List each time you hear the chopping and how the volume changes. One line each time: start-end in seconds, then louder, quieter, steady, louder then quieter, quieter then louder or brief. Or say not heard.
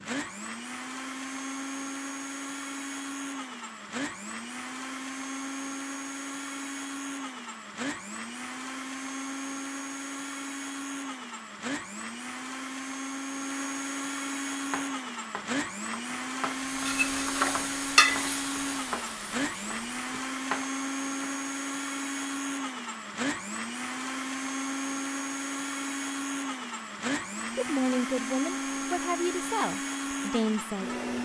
14.7-21.4 louder.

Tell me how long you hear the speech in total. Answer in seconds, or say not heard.
3 s.